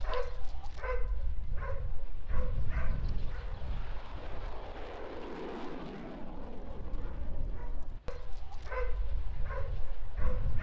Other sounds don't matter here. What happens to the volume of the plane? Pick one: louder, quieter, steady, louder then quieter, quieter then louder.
louder then quieter.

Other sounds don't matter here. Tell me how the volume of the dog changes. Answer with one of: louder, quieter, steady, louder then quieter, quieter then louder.
quieter then louder.